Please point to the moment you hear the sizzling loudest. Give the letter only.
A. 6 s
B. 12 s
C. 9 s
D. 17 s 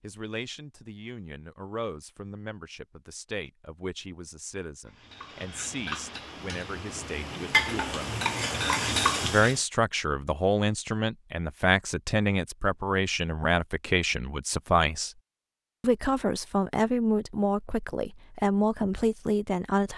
C.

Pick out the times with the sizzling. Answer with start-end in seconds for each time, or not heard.
4.8-9.6.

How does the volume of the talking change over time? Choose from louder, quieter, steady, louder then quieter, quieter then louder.
louder.